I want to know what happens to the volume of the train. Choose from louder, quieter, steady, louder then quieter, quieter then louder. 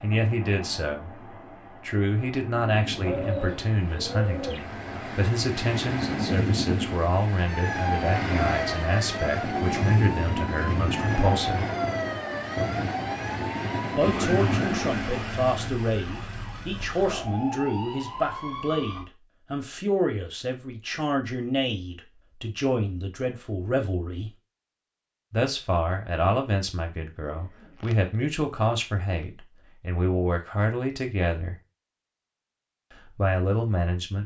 louder.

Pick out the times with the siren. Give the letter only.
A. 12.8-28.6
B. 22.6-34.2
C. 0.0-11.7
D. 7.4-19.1
D.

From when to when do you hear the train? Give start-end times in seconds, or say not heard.
0.0-15.8.